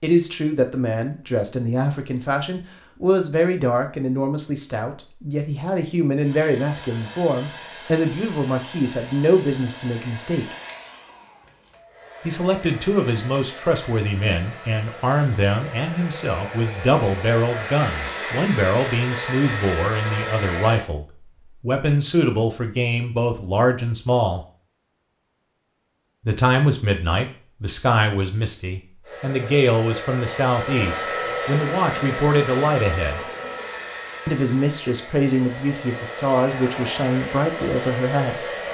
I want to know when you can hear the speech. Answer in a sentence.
You can hear the speech from 0.0 to 10.6 s, from 12.2 to 24.4 s, from 26.2 to 33.2 s and from 34.2 to 38.5 s.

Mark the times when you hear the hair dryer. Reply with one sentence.
The hair dryer can be heard from 6.2 to 20.9 s and from 29.0 to 38.6 s.